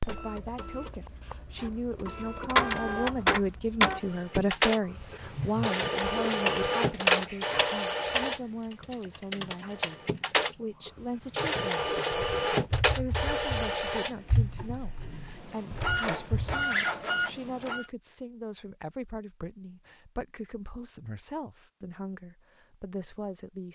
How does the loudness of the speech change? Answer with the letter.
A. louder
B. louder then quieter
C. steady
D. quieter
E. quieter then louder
D.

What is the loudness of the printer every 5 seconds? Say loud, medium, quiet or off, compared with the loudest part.
loud, loud, loud, loud, off.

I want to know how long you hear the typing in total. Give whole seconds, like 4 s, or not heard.
12 s.